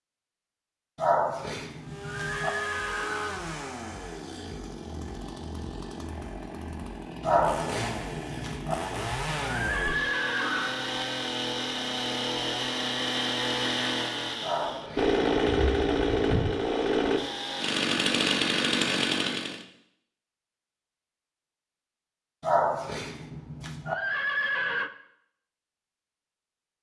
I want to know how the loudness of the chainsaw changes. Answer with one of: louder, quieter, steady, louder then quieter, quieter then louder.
louder.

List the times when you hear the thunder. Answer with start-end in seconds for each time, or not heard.
not heard.